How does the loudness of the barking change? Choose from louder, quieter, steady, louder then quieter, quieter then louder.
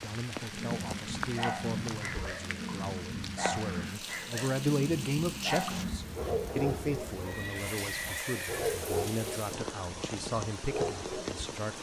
steady.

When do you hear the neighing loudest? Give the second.
8 s.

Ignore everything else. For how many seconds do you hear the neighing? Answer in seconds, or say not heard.
2 s.